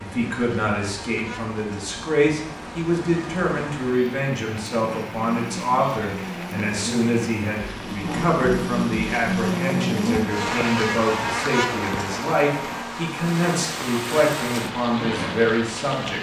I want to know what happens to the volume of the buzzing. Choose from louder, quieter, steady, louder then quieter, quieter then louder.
louder then quieter.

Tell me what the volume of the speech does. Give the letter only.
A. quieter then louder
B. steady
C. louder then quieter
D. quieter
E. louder
B.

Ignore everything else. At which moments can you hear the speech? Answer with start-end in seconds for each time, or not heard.
0.0-16.1.